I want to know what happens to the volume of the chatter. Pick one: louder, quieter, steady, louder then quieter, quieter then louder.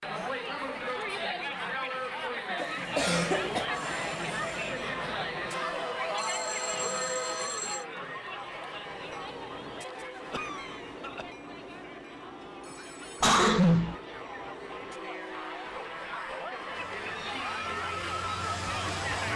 quieter then louder.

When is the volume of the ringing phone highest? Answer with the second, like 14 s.
7 s.